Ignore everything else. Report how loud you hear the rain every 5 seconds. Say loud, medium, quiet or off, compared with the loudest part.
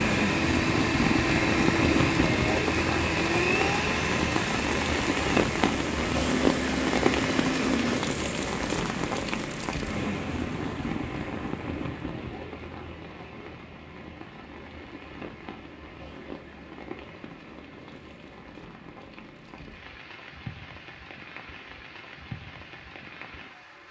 loud, loud, medium, quiet, quiet.